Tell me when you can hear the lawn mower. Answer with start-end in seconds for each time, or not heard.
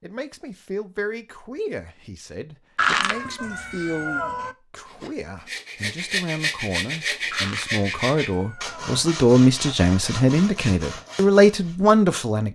not heard.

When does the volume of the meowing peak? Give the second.
3 s.